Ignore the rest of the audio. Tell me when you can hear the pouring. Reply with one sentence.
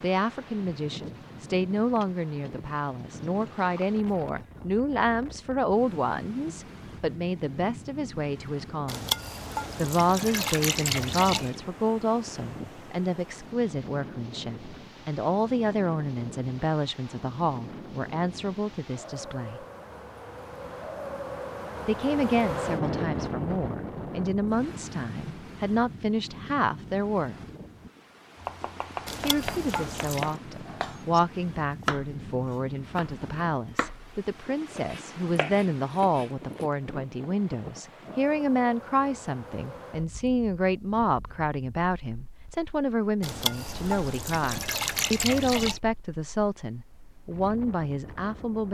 The pouring can be heard from 8.8 to 11.6 s, from 29.1 to 30.4 s and from 43.2 to 45.8 s.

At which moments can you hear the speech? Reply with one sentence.
You can hear the speech from 0.0 to 9.1 s, from 9.8 to 19.6 s, from 21.9 to 27.4 s and from 29.2 to 48.7 s.